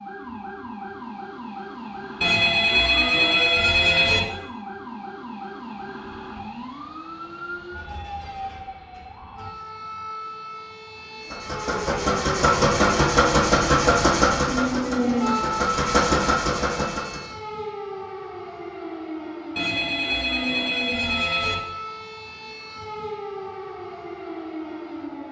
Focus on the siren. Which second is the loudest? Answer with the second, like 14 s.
15 s.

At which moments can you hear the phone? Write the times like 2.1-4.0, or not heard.
2.2-4.2, 19.6-21.6.